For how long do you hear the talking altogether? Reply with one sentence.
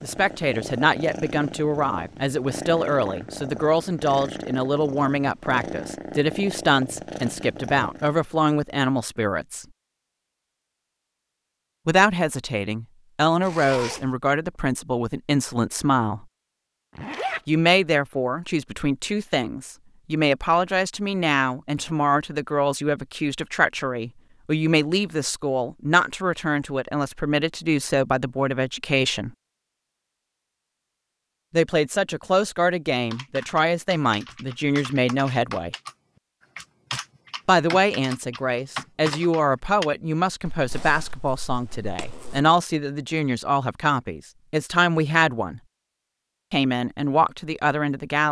The talking can be heard for 40 seconds in total.